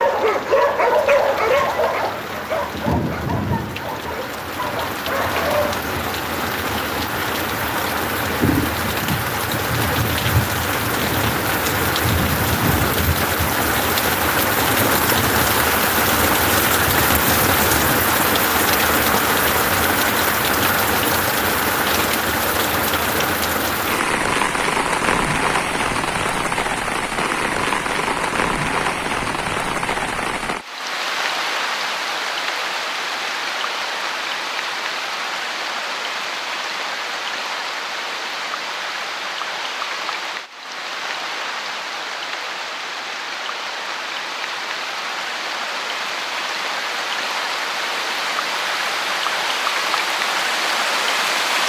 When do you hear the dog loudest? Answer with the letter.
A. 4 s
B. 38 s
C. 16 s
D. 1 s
D.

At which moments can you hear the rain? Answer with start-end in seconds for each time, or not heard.
0.0-51.6.